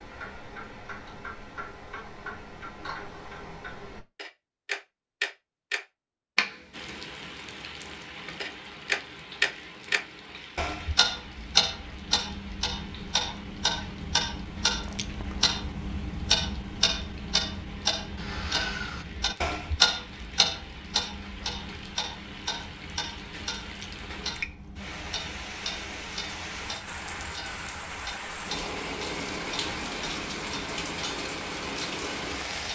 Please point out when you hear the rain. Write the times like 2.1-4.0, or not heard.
6.7-32.7.